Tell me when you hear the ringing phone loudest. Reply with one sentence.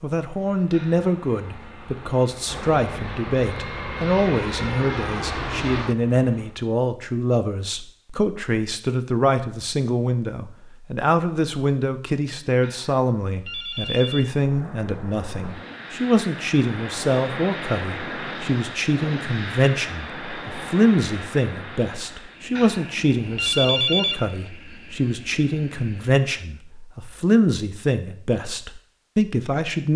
The volume of the ringing phone peaks at 24 seconds.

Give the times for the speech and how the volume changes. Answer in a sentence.
The speech can be heard from 0.0 to 29.9 s, at a steady volume.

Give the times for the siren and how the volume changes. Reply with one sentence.
The siren can't be heard in this clip.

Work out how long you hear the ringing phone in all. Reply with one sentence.
You can hear the ringing phone for 4 seconds altogether.